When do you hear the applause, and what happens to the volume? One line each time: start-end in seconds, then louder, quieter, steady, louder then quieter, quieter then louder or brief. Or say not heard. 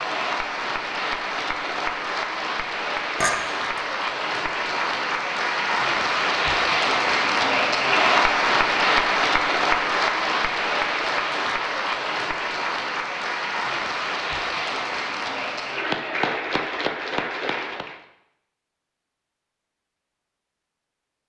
0.0-18.0 louder then quieter.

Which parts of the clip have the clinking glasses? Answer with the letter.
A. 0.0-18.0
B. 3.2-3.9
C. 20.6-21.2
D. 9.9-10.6
B.